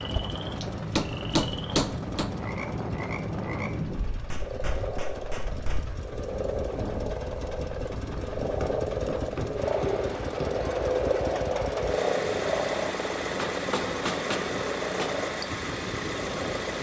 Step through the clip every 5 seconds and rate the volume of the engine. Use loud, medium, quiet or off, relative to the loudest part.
medium, medium, loud, loud.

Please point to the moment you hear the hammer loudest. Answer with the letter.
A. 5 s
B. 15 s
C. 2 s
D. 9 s
C.